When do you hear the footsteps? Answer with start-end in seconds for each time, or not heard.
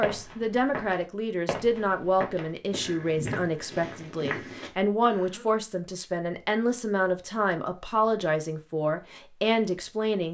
0.0-4.7.